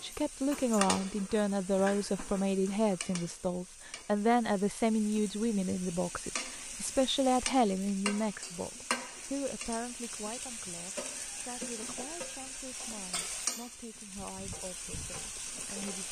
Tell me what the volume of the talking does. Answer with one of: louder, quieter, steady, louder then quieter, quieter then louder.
quieter.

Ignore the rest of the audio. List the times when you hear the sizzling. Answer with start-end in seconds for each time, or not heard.
0.0-16.0.